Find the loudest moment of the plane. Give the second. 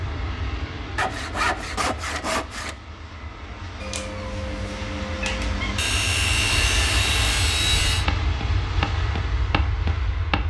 7 s.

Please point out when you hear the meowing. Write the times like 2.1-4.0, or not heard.
3.8-5.8.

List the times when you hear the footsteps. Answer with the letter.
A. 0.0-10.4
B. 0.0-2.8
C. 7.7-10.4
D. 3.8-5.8
C.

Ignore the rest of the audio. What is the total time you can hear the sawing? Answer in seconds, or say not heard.
4 s.